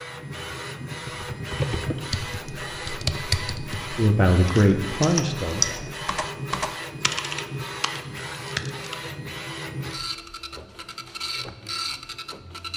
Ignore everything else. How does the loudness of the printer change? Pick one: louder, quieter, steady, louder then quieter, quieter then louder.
steady.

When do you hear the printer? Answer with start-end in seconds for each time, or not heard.
0.0-12.7.